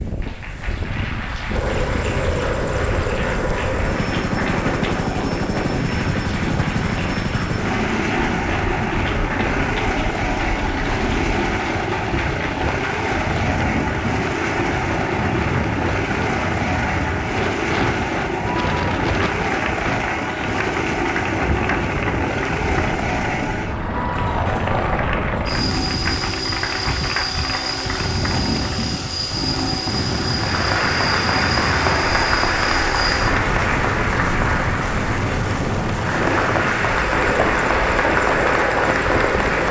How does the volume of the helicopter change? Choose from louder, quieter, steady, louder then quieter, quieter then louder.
steady.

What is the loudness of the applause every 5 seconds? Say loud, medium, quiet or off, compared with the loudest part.
medium, medium, medium, medium, medium, medium, loud, loud.